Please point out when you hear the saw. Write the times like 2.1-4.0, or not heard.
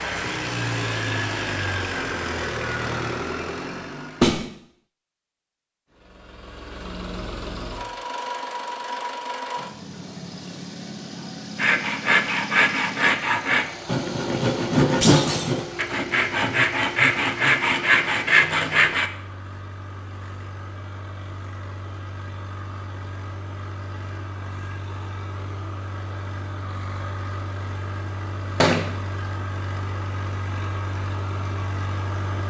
11.6-19.1.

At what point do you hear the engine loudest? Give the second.
1 s.